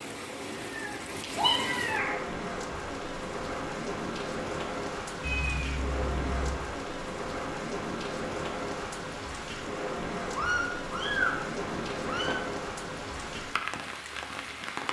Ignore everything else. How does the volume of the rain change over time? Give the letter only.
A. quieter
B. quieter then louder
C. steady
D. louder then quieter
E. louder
C.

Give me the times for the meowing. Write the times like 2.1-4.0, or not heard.
0.5-2.2, 5.2-6.5, 10.3-12.4.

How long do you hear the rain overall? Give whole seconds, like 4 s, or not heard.
15 s.